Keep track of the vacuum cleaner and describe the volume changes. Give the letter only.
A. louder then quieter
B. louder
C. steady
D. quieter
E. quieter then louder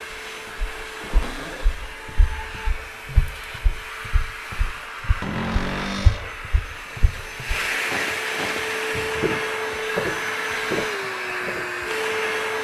B.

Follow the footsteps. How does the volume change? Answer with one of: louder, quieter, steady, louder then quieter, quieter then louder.
louder.